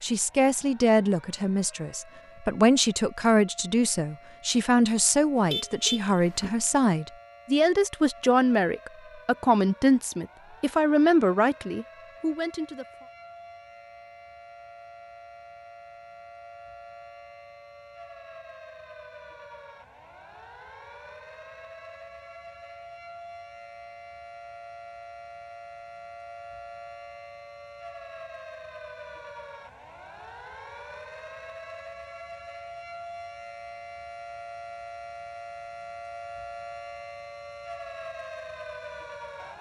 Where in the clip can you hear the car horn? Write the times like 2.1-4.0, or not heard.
5.3-6.5.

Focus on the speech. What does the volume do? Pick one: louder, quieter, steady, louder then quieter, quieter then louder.
steady.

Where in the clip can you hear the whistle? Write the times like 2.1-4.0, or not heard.
not heard.